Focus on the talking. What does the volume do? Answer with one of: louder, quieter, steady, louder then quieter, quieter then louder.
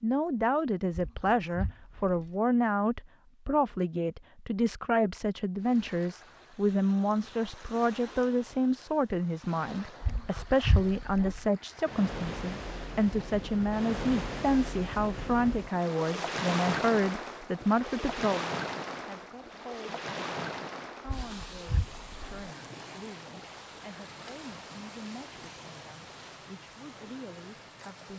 quieter.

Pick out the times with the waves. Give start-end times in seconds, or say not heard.
5.5-28.1.